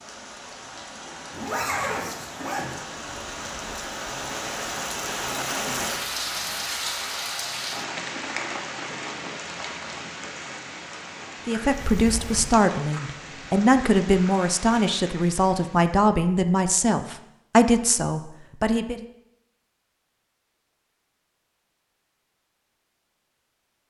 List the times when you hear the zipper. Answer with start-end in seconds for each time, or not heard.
1.3-2.8.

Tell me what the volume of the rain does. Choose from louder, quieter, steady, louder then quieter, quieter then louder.
louder then quieter.